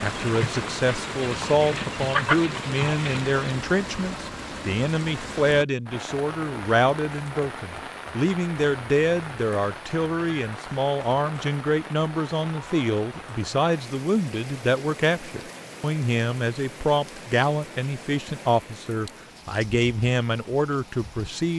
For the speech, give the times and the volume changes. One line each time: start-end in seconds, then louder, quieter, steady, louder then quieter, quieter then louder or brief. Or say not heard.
0.0-21.5 steady.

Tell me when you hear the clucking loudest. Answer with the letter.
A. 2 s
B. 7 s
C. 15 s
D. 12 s
A.